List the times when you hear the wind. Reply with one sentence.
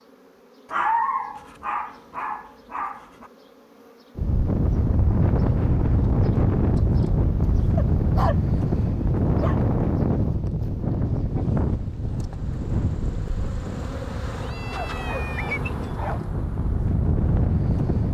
The wind can be heard from 4.2 to 18.1 s.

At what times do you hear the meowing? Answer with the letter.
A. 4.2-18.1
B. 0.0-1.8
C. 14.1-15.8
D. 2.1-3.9
C.